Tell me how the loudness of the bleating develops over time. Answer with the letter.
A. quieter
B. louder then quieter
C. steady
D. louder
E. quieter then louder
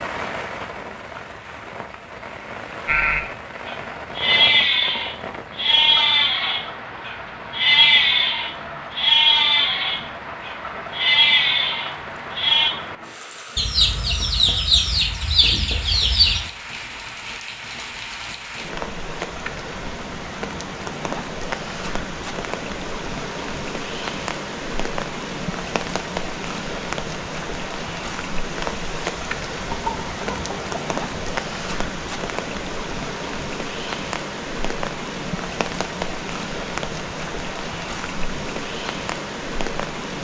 C.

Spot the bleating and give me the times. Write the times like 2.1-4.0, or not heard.
2.9-12.7.